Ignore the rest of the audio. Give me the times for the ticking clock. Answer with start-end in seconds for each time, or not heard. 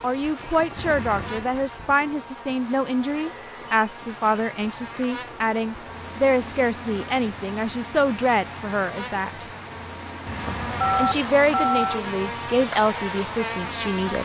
not heard.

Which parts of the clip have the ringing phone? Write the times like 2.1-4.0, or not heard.
3.1-3.9, 10.8-12.0.